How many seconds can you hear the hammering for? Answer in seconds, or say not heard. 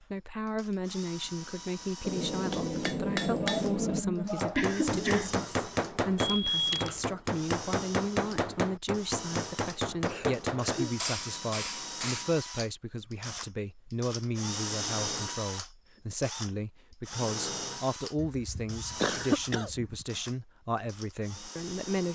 10 s.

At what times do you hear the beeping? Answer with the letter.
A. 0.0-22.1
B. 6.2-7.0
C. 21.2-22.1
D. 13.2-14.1
B.